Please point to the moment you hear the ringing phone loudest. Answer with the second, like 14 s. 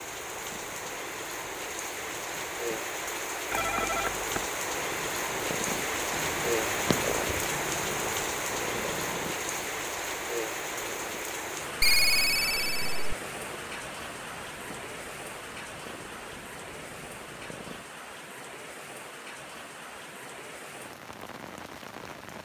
12 s.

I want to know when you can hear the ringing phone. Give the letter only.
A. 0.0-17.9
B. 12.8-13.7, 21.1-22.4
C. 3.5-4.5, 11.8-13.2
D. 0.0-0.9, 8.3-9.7
C.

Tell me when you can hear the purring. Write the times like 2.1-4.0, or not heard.
0.0-17.9.